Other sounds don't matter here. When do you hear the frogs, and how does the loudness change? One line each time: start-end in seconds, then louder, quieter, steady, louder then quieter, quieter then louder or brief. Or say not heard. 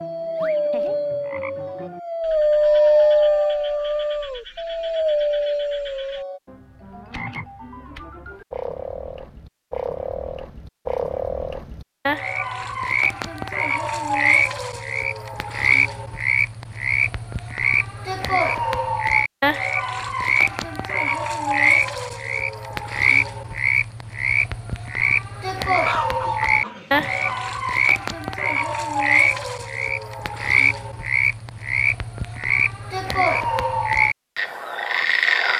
0.0-35.5 louder.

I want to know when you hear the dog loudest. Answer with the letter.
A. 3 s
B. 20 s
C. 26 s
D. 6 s
A.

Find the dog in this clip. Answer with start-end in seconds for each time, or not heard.
0.0-6.4.